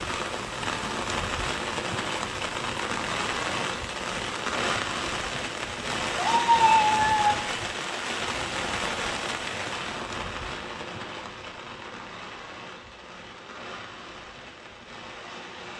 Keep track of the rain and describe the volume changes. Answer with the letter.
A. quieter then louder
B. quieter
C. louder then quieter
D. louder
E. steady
B.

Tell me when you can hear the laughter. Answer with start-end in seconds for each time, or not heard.
not heard.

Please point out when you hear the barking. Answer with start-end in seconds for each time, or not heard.
not heard.